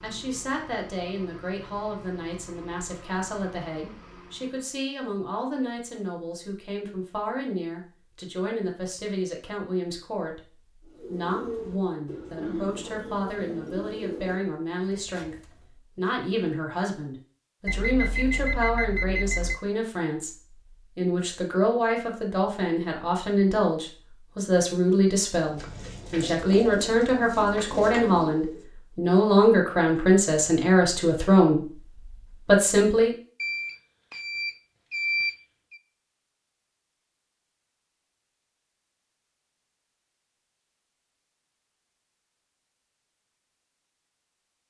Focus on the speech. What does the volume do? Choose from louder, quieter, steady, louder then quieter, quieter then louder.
louder.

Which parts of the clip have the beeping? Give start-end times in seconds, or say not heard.
17.6-19.6, 33.4-35.8.